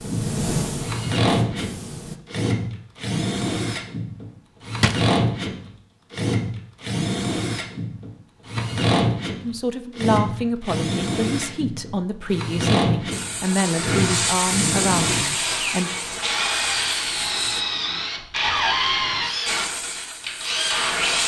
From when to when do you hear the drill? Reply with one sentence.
The drill can be heard from 0.0 to 21.2 s.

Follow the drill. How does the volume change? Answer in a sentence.
The loudness of the drill stays about the same.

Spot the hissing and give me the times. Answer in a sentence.
The hissing can be heard from 0.0 to 2.2 s, from 13.1 to 17.6 s and from 19.4 to 21.2 s.